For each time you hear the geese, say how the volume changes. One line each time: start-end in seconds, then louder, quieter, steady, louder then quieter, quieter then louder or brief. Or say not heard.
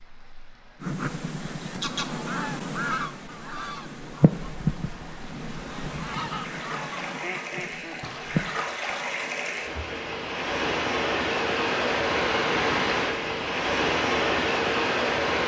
0.8-9.7 steady.